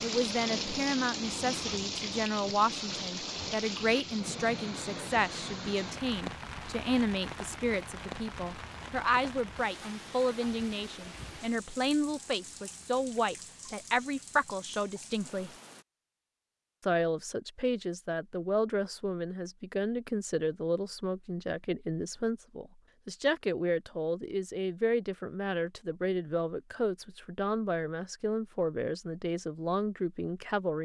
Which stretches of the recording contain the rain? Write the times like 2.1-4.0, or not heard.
0.0-15.8.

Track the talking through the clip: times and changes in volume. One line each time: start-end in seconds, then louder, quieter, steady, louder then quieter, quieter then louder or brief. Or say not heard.
0.0-15.5 steady
16.8-30.7 steady.